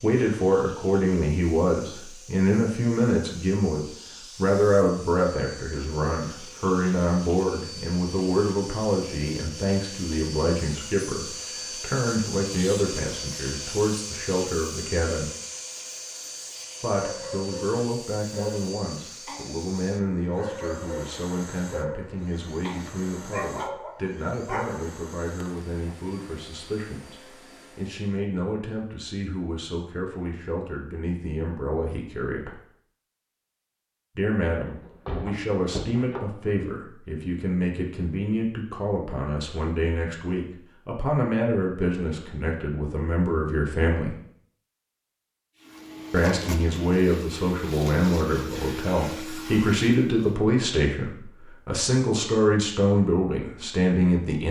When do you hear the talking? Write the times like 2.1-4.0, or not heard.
0.0-15.3, 16.8-32.6, 34.1-44.1, 46.1-54.4.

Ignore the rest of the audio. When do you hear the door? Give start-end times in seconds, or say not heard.
34.6-36.5.